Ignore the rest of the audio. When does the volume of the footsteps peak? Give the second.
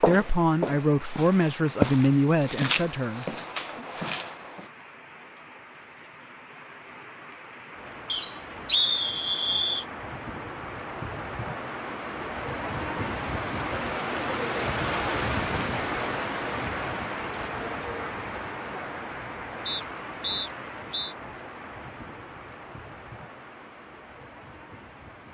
2 s.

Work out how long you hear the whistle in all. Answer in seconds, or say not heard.
3 s.